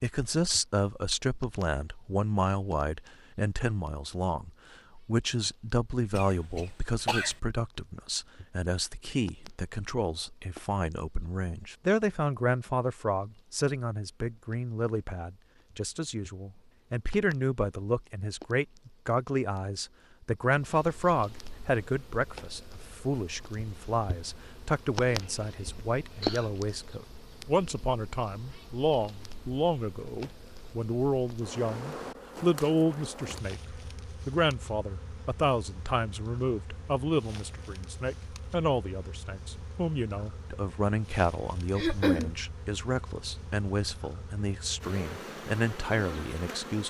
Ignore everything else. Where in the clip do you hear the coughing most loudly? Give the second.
42 s.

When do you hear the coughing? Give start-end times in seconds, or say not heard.
6.1-7.3, 25.2-26.6, 41.8-42.3.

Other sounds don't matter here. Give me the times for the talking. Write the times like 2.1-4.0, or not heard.
0.0-46.8.